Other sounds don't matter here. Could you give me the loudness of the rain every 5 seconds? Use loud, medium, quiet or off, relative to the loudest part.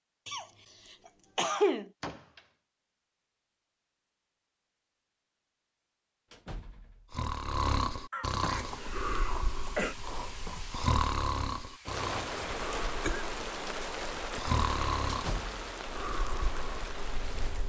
off, medium, loud, loud.